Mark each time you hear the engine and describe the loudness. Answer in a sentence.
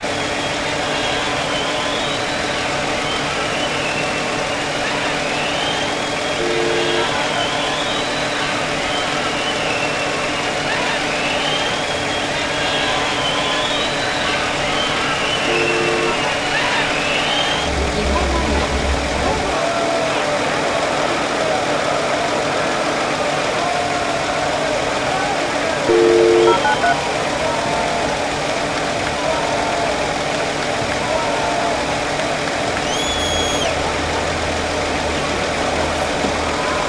The engine can be heard from 0.0 to 36.8 s, at a steady volume.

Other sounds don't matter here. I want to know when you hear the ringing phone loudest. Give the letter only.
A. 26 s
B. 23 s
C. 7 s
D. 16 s
A.